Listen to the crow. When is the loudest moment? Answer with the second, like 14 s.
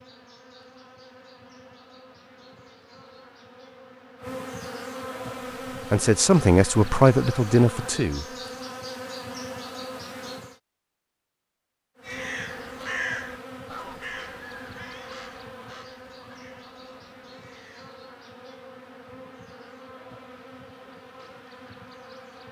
13 s.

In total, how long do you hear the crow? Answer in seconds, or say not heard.
6 s.